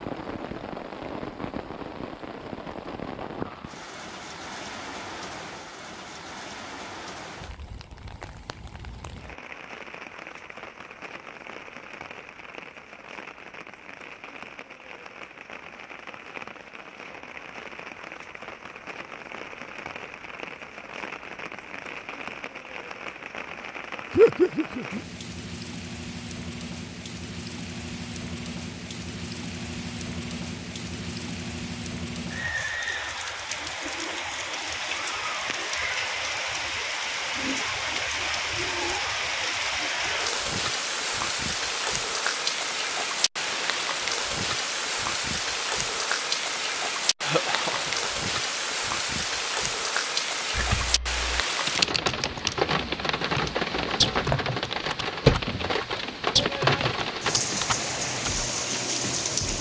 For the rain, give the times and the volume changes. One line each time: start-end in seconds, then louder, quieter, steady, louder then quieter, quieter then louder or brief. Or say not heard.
0.0-59.5 louder.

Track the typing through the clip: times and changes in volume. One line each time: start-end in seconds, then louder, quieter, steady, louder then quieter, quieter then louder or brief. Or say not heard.
50.5-58.4 steady.